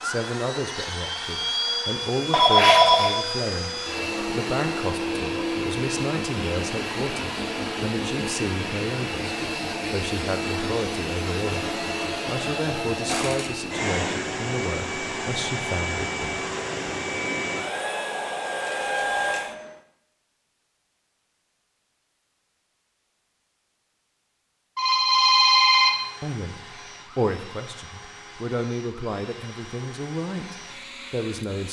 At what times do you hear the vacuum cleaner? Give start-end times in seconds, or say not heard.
0.0-19.8, 25.6-31.6.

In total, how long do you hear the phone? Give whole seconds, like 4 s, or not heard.
4 s.